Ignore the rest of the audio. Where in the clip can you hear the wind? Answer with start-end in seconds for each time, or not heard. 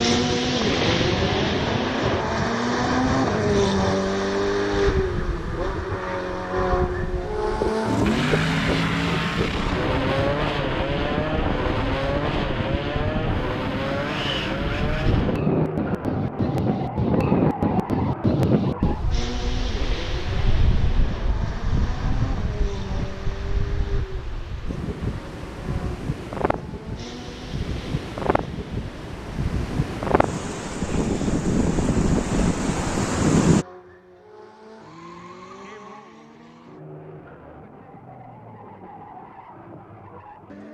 0.0-33.6.